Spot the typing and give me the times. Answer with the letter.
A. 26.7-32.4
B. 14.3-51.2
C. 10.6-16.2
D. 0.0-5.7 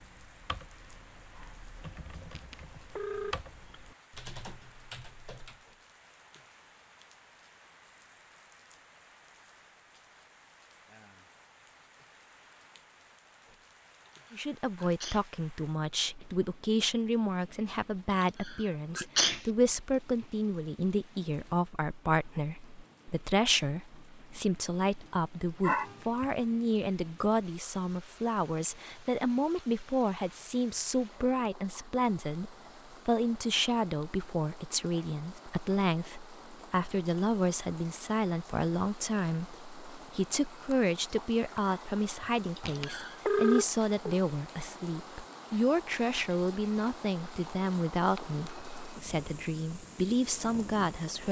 D.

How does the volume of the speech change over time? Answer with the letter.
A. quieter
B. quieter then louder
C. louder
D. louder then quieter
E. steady
E.